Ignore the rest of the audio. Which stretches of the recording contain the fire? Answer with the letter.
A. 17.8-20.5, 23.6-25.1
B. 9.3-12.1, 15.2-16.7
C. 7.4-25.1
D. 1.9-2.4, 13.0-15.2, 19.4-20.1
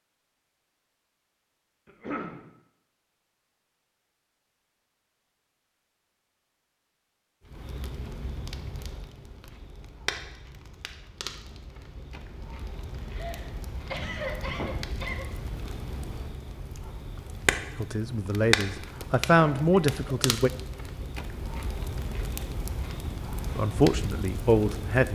C.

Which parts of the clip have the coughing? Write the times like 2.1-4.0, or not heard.
1.9-2.4, 13.0-15.2, 19.4-20.1.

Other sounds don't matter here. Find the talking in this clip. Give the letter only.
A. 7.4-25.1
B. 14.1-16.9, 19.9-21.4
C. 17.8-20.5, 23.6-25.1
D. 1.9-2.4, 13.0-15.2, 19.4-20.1
C.